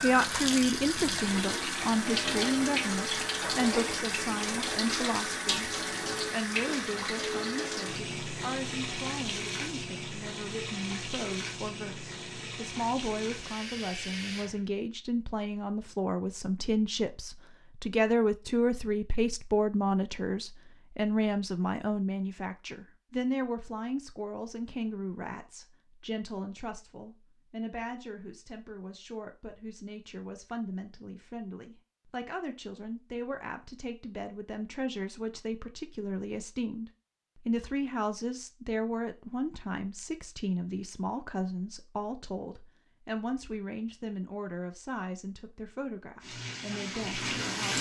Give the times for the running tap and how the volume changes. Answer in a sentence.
The running tap can be heard from 0.0 to 14.7 s, getting quieter; and briefly from 46.2 to 47.7 s.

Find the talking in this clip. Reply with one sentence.
The talking can be heard from 0.0 to 5.7 s and from 6.3 to 47.7 s.